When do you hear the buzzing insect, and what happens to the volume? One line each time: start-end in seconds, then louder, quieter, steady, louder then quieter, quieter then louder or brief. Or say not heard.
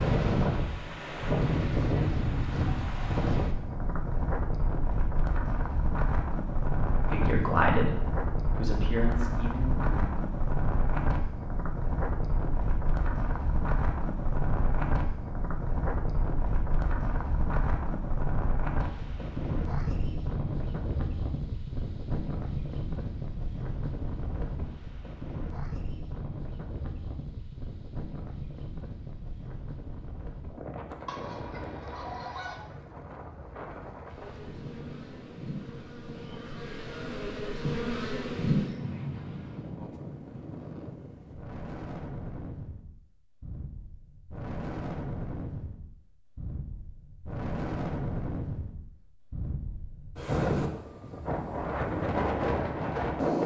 34.0-39.8 louder.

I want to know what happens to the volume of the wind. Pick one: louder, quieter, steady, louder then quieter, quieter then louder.
quieter then louder.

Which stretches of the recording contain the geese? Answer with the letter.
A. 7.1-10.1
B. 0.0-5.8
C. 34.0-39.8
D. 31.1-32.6
D.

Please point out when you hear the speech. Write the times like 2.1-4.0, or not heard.
7.1-10.1.